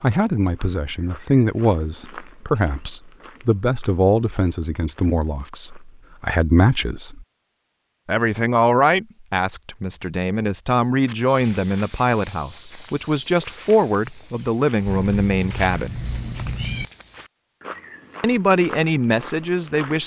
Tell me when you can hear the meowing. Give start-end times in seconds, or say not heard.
14.8-16.9.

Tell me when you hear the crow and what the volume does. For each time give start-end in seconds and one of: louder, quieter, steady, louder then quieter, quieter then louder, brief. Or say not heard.
not heard.